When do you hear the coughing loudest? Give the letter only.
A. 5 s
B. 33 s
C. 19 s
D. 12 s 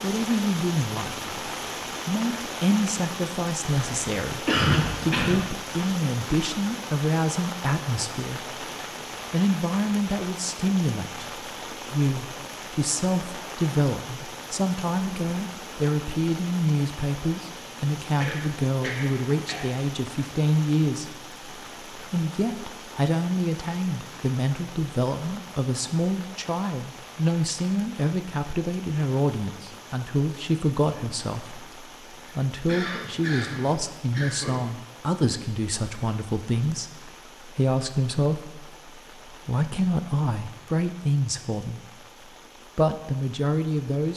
A.